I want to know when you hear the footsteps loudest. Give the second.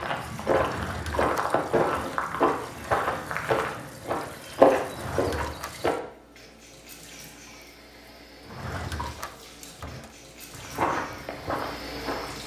5 s.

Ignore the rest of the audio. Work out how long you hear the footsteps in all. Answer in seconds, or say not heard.
8 s.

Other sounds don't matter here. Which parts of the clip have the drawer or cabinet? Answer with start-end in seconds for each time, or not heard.
0.6-2.2, 4.8-5.8, 8.4-10.1.